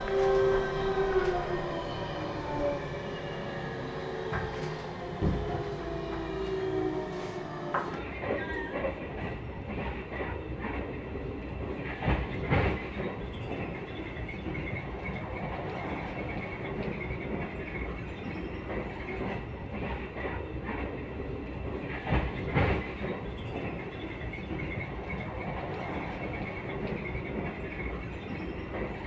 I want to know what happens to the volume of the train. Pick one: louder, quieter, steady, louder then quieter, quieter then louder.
steady.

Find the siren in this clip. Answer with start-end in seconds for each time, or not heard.
0.0-2.8.